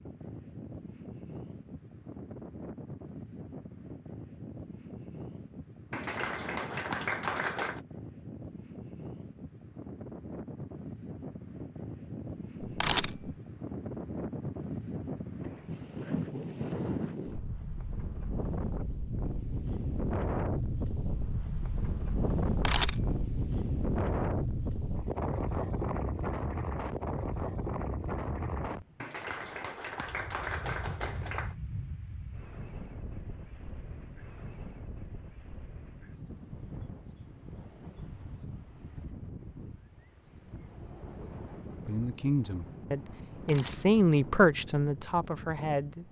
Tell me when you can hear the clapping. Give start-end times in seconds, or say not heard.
5.9-7.8, 29.0-31.6.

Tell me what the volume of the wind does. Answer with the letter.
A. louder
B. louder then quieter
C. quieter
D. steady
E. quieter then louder
B.